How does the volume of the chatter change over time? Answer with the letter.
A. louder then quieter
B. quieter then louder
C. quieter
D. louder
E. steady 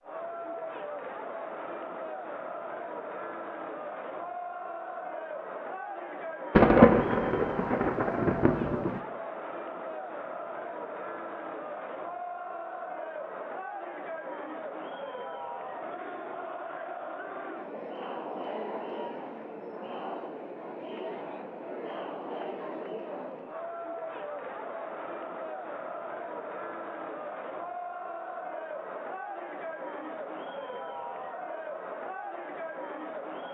E.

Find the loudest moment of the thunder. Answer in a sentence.
The loudest moment of the thunder is at 7 seconds.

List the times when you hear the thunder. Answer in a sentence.
The thunder can be heard from 6.5 to 9.0 s.